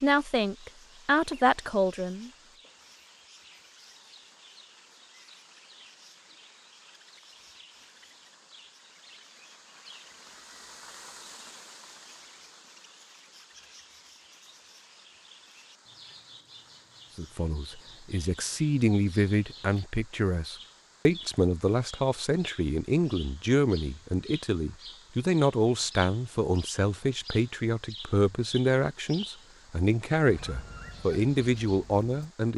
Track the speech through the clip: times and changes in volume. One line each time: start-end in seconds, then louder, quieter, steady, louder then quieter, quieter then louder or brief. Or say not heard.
0.0-2.3 brief
17.1-32.5 steady.